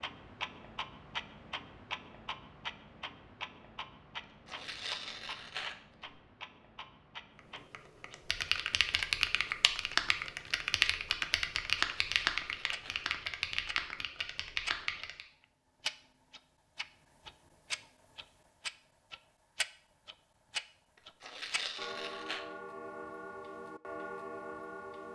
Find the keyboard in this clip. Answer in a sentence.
The keyboard can be heard from 7.5 to 15.2 s.